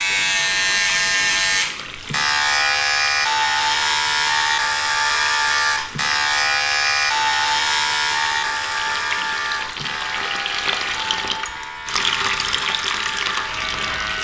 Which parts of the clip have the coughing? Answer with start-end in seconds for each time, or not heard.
not heard.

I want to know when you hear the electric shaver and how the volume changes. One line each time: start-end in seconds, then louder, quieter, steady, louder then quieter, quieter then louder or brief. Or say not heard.
0.0-14.1 quieter.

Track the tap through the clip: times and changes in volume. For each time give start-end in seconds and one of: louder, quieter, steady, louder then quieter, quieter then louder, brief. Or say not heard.
0.0-14.1 louder.